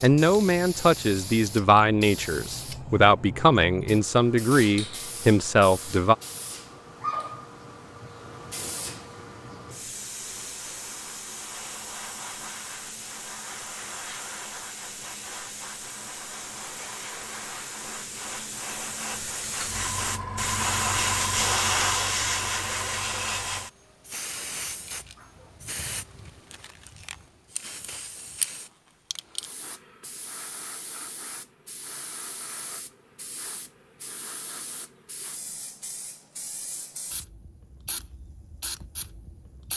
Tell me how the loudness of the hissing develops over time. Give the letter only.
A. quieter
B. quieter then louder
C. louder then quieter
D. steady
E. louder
C.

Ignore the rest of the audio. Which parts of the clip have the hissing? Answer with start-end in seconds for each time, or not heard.
0.0-39.7.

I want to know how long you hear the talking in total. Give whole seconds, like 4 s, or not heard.
6 s.